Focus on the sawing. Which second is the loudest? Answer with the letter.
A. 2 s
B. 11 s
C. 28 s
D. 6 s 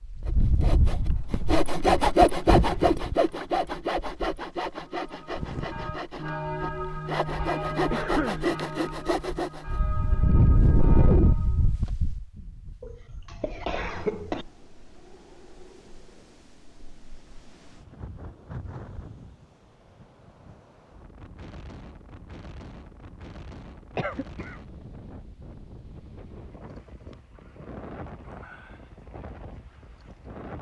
A.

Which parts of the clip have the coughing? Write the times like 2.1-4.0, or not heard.
7.9-8.4, 12.8-14.4, 23.9-24.6.